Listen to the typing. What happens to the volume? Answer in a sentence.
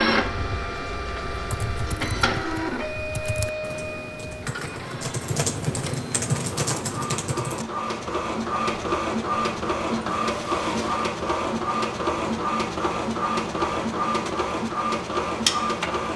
The loudness of the typing goes up.